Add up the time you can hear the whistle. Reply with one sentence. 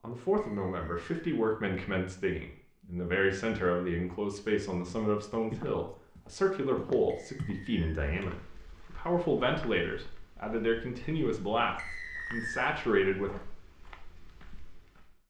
The whistle can be heard for 3 seconds in total.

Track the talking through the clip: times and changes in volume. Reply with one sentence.
You can hear the talking from 0.0 to 13.4 s, at a steady volume.